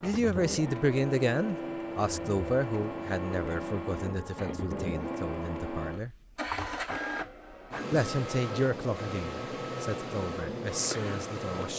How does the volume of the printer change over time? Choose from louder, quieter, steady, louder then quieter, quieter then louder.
steady.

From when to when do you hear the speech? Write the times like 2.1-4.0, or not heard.
0.0-6.1, 7.9-11.7.